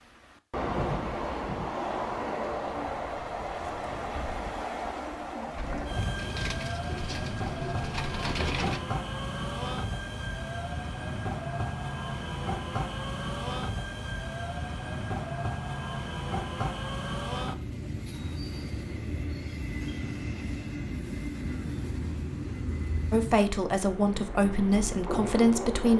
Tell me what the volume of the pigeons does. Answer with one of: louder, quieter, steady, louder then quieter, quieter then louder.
louder.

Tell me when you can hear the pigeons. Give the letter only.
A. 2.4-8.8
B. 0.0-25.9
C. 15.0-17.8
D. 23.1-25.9
A.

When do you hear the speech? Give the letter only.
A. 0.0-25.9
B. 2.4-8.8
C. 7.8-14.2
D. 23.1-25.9
D.